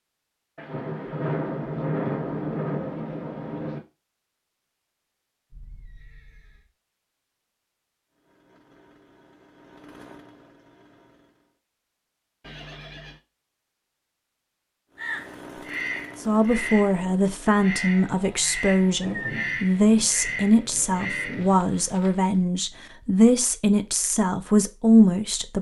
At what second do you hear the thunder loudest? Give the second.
2 s.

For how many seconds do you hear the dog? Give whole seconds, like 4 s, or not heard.
not heard.